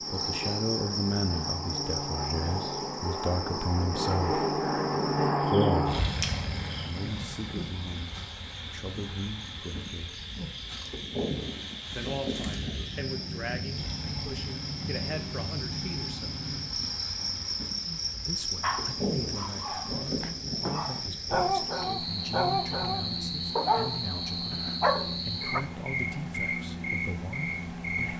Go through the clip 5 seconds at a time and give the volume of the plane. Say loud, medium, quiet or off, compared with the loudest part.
loud, loud, medium, medium, medium, medium.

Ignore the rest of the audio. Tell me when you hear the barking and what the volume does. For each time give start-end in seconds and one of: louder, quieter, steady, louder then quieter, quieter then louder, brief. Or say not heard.
18.6-25.6 louder.